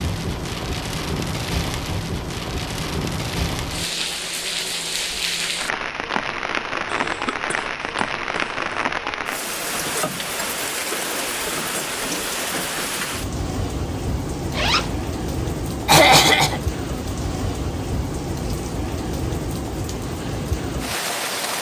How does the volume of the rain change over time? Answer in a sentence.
The volume of the rain stays about the same.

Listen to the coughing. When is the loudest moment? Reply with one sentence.
The loudest moment of the coughing is at 16 seconds.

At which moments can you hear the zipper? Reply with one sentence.
You can hear the zipper from 14.5 to 15.0 s.